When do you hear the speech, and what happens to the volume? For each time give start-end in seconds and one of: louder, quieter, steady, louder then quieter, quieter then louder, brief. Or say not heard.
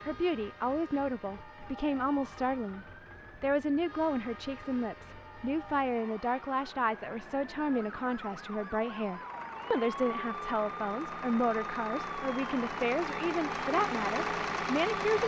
0.0-15.2 steady.